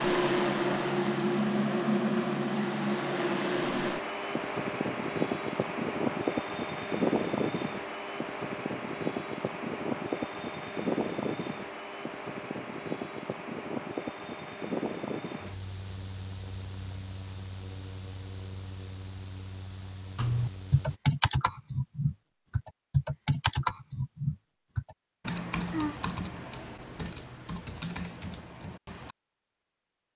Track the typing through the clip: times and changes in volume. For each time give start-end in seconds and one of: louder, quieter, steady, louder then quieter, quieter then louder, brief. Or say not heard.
20.1-29.1 quieter.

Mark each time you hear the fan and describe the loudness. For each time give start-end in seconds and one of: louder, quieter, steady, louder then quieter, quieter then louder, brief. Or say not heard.
0.0-21.0 quieter.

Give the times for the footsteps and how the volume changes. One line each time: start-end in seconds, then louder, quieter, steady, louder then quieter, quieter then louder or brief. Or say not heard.
not heard.